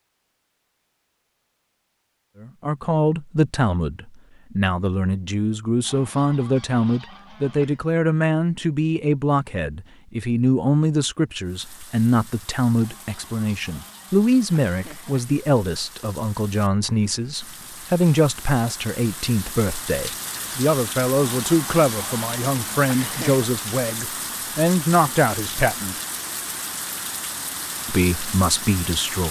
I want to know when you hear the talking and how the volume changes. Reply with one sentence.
The talking can be heard from 2.4 to 25.9 s, at a steady volume; and briefly from 27.9 to 29.2 s.